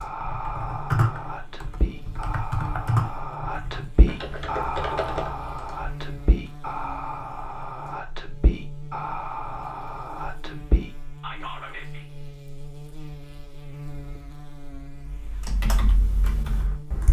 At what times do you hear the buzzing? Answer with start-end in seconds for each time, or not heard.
0.0-17.0.